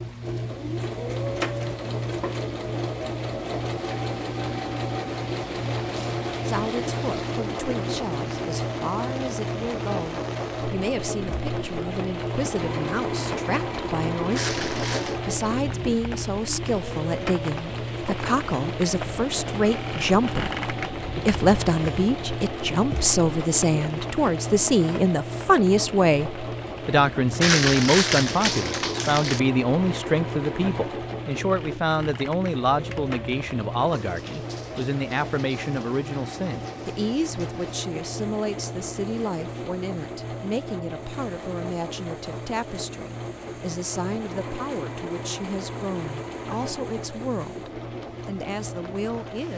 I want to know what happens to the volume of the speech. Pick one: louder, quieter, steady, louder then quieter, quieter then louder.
louder then quieter.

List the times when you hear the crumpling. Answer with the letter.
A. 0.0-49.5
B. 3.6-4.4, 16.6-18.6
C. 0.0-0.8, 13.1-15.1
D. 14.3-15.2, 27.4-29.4
D.